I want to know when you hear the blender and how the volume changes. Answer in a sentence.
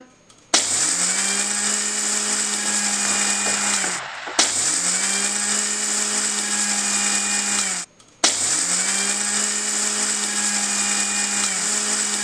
You can hear the blender from 0.0 to 12.2 s, at a steady volume.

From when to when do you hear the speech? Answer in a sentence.
The speech can't be heard in this clip.